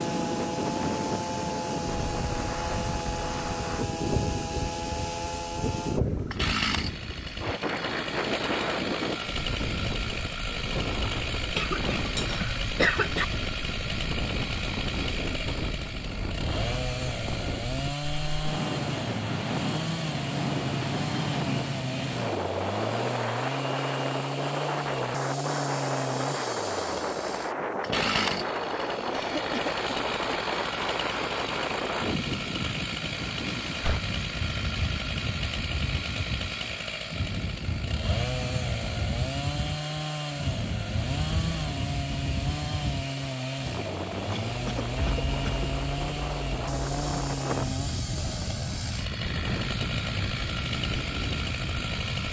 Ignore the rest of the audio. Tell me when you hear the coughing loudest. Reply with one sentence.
The loudest moment of the coughing is at 13 seconds.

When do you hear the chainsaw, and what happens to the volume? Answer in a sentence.
You can hear the chainsaw from 0.0 to 52.2 s, at a steady volume.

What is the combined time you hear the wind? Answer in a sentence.
You can hear the wind for 52 seconds altogether.